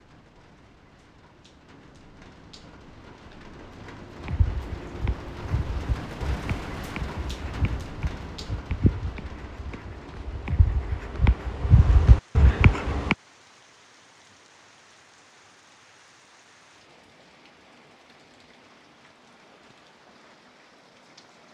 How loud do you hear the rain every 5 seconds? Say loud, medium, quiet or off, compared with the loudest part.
medium, loud, quiet, quiet, quiet.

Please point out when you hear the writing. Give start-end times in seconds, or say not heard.
4.2-13.2.